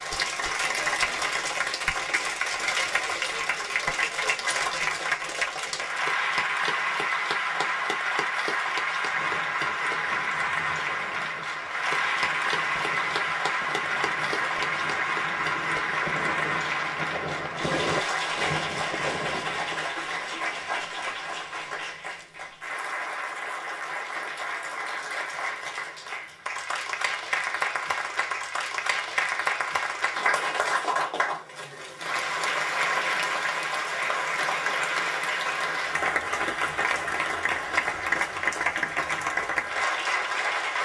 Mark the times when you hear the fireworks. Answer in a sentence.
You can hear the fireworks from 9.1 to 19.9 s.